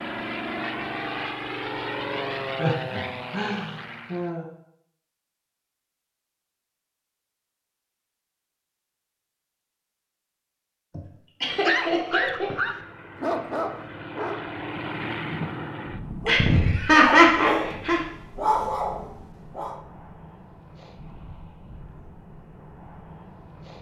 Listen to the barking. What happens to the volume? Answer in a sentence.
The loudness of the barking goes down, then up.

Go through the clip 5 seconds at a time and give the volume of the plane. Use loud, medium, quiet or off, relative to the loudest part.
loud, off, medium, medium, quiet.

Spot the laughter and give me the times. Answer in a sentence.
The laughter can be heard from 2.5 to 4.5 s, from 10.9 to 12.6 s and from 16.2 to 18.0 s.